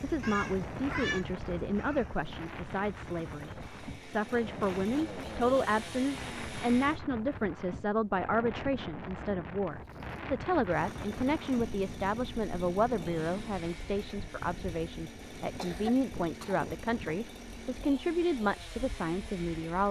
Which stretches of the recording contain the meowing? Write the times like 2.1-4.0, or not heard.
0.2-1.2.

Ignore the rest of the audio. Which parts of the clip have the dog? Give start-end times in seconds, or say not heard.
not heard.